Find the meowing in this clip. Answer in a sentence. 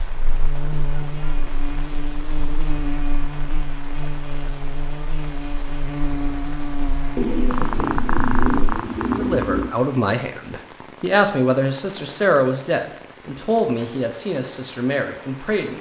You can hear the meowing from 7.2 to 9.8 s.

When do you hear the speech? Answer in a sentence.
You can hear the speech from 9.2 to 15.7 s.